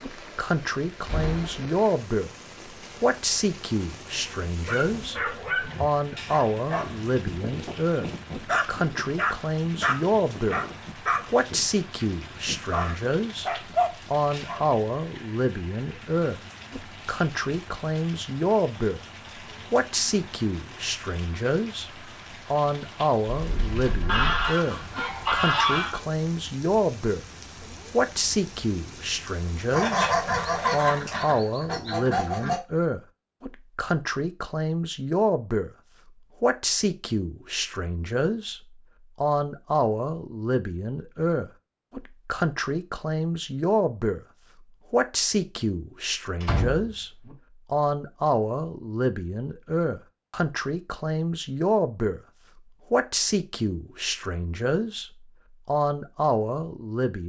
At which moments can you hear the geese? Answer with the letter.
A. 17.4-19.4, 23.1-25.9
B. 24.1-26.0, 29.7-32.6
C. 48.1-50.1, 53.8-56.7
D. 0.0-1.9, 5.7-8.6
B.